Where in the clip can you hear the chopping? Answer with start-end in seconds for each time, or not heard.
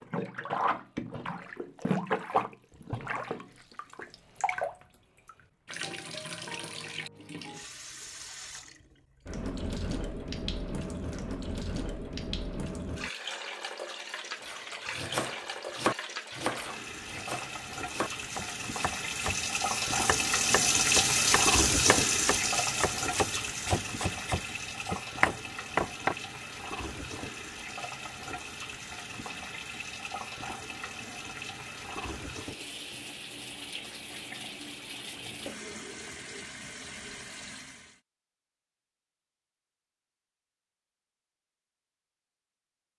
14.4-26.1.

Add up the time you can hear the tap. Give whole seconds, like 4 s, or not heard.
38 s.